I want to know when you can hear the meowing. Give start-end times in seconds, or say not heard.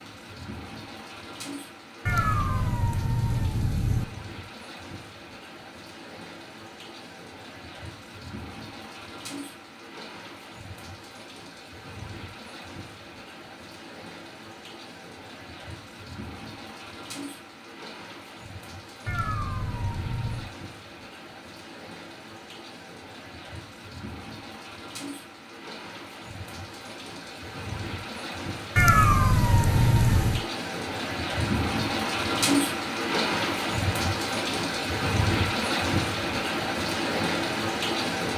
2.0-4.0, 19.1-20.5, 28.8-30.4.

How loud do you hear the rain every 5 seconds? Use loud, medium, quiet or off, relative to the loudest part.
quiet, quiet, quiet, quiet, quiet, medium, loud, loud.